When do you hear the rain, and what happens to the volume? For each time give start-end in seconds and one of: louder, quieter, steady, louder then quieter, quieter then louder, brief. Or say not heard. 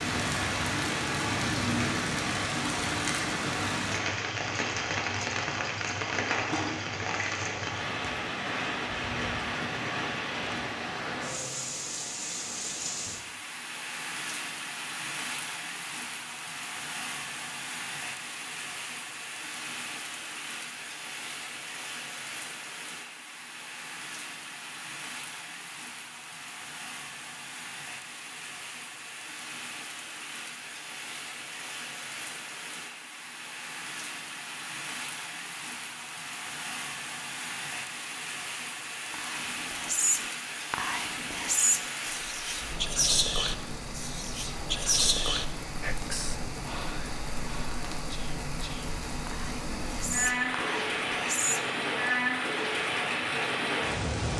0.0-54.3 quieter then louder.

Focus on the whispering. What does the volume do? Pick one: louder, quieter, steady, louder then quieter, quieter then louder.
quieter then louder.